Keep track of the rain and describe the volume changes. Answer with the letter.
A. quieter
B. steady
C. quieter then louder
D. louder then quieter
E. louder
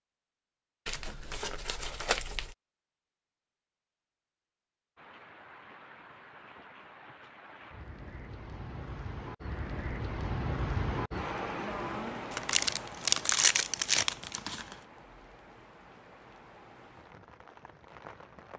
D.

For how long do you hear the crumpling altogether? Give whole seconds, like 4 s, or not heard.
4 s.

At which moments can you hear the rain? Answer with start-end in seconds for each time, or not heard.
5.0-18.5.